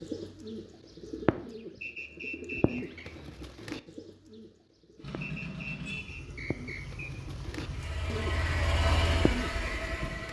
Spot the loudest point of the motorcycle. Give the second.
9 s.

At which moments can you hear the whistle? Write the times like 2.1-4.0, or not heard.
1.8-3.0, 5.2-7.2.